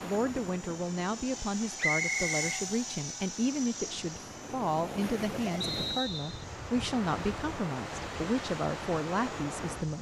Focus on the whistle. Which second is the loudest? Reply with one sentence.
The volume of the whistle peaks at 2 seconds.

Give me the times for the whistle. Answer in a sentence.
The whistle can be heard from 1.8 to 2.5 s and from 5.6 to 6.5 s.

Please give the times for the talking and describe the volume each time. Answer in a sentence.
The talking can be heard from 0.0 to 9.9 s, at a steady volume.